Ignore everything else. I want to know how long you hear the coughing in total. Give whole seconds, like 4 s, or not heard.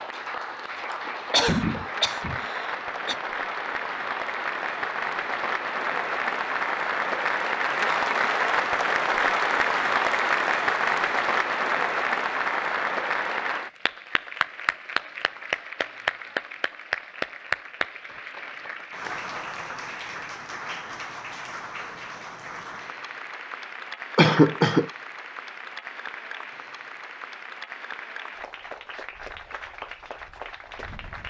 3 s.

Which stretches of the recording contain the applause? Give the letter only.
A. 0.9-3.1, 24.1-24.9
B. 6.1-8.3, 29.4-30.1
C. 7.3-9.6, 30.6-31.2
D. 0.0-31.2
D.